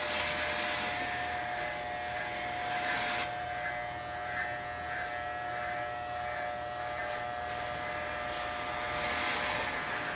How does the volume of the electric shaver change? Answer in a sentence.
The loudness of the electric shaver stays about the same.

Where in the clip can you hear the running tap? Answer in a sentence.
The running tap can be heard from 0.0 to 3.3 s and from 7.5 to 10.1 s.